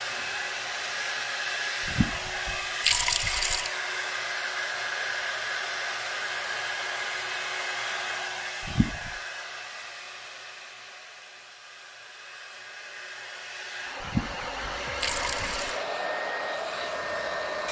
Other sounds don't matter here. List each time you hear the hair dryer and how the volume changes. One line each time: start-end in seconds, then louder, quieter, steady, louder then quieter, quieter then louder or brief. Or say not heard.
0.0-17.6 quieter then louder.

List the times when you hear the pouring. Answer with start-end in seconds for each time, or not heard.
1.8-3.7, 8.6-9.2, 14.0-15.8.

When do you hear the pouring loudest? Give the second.
3 s.